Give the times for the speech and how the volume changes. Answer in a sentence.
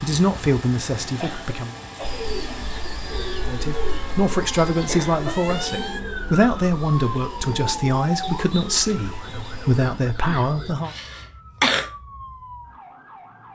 You can hear the speech briefly from 0.0 to 1.8 s; and from 3.5 to 10.9 s, at a steady volume.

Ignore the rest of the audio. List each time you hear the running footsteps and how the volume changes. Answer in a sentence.
The running footsteps can't be heard in this clip.